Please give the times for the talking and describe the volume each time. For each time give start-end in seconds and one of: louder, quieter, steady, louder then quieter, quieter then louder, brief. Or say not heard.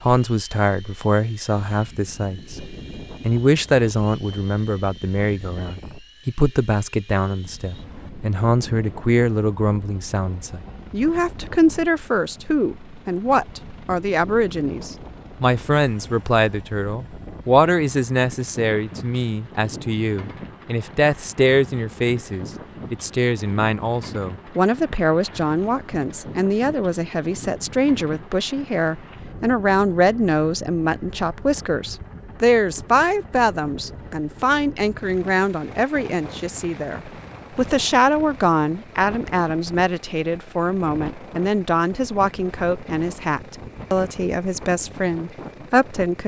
0.0-2.6 brief
3.2-46.2 steady.